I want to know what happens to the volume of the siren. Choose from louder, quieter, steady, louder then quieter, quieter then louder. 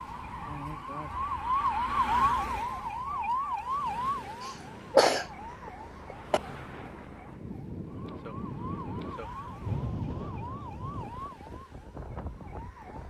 quieter.